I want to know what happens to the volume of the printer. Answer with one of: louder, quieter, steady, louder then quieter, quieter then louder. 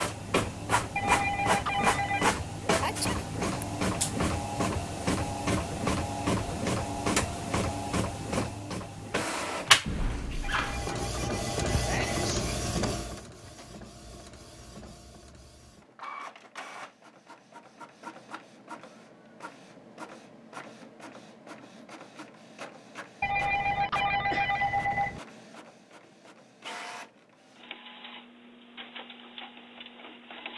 quieter.